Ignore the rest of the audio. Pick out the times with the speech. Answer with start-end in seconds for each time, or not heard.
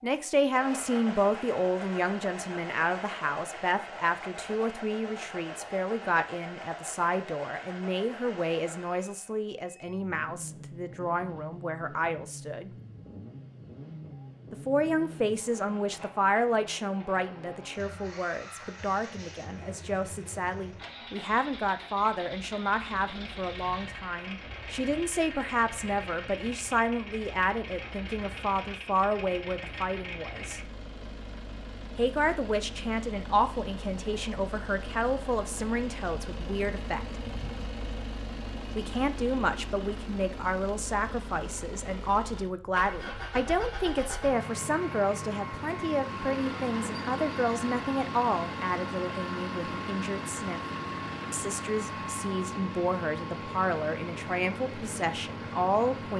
0.0-12.7, 14.5-30.6, 31.9-37.0, 38.8-50.6, 51.3-56.1.